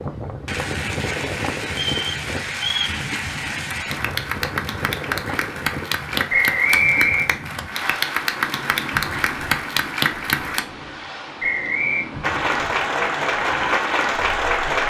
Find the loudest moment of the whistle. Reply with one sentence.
The volume of the whistle peaks at 7 seconds.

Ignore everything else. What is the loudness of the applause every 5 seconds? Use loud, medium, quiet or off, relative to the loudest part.
medium, loud, loud.